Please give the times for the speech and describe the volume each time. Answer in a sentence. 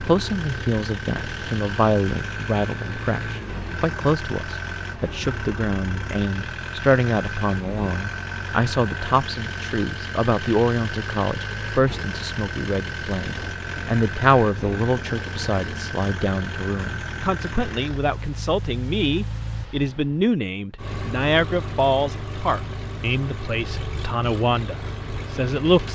You can hear the speech from 0.0 to 25.9 s, at a steady volume.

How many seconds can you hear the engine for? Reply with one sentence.
The engine can be heard for 26 seconds in total.